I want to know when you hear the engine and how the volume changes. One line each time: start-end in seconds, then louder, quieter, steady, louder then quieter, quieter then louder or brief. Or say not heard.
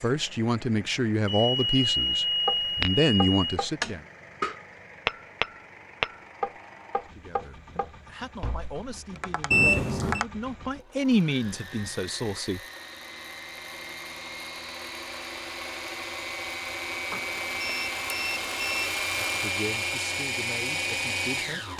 0.0-21.7 louder.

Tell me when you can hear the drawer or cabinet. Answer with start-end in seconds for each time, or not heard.
not heard.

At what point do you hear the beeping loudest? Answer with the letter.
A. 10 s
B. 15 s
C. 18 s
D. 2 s
A.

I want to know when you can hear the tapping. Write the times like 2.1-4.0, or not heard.
2.5-10.3.